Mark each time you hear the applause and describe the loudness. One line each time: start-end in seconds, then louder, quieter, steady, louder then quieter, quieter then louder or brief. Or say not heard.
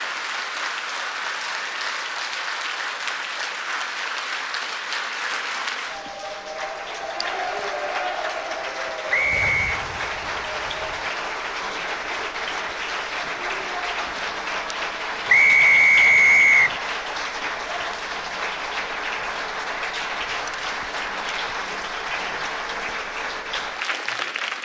0.0-24.5 steady.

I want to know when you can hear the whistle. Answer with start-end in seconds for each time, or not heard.
9.1-9.7, 15.2-16.8.